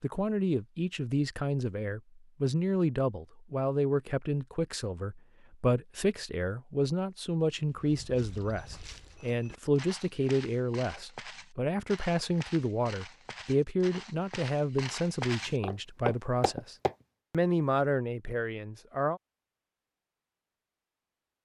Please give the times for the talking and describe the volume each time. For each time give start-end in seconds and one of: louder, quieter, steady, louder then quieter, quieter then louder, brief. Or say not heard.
0.0-19.2 steady.